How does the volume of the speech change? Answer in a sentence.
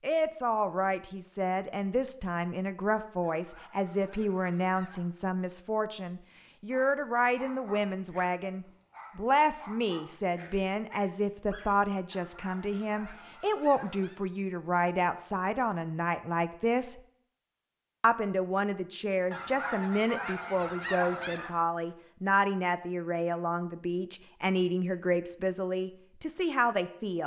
The loudness of the speech stays about the same.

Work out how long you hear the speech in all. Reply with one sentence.
You can hear the speech for 26 seconds altogether.